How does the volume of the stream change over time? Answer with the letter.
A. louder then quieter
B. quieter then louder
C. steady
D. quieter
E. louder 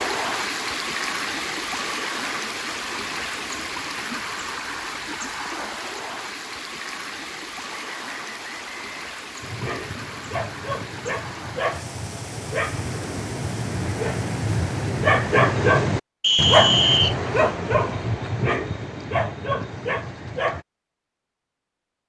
D.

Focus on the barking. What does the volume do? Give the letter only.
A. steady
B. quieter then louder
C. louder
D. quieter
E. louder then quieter
E.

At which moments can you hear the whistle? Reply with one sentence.
You can hear the whistle from 7.7 to 9.2 s and from 16.2 to 17.1 s.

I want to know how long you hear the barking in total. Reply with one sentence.
You can hear the barking for 11 seconds altogether.